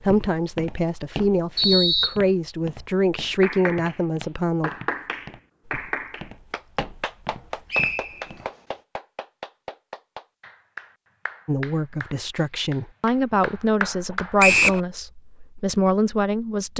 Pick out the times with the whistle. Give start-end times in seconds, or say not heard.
1.6-2.1, 7.7-8.2, 14.4-14.8.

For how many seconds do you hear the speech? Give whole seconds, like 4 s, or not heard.
10 s.